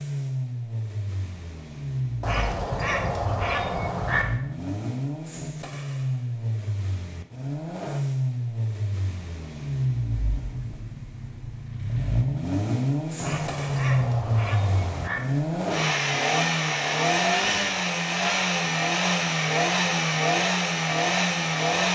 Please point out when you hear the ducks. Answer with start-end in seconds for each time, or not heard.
2.2-4.2, 13.2-15.2.